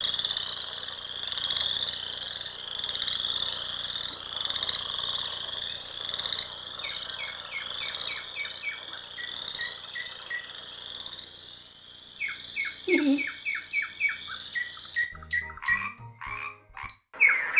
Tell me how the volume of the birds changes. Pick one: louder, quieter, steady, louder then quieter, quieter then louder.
louder.